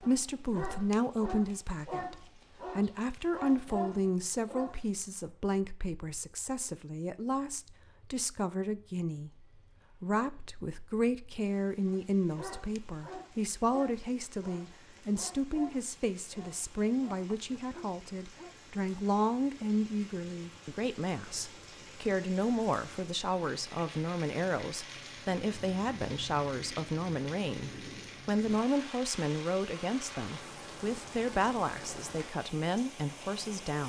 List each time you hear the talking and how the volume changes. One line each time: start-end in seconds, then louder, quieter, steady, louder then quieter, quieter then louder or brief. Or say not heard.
0.0-33.8 steady.